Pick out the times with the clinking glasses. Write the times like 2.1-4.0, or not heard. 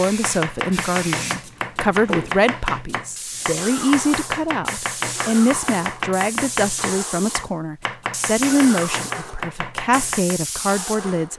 not heard.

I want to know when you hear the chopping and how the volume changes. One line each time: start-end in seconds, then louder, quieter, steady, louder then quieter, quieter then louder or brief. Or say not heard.
0.0-10.4 steady.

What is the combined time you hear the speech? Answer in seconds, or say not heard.
11 s.